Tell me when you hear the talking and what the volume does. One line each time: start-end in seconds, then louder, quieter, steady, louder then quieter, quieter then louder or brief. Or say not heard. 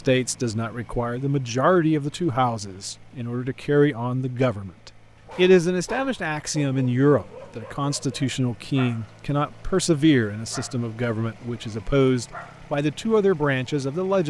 0.0-14.2 steady.